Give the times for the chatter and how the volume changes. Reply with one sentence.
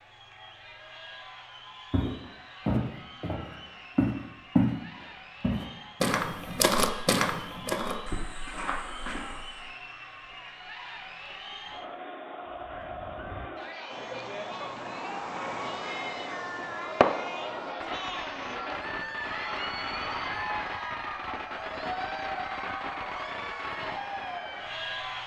The chatter can be heard from 0.0 to 25.2 s, getting louder.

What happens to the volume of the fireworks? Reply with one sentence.
The loudness of the fireworks goes up, then down.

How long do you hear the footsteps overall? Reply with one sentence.
The footsteps can be heard for 8 seconds in total.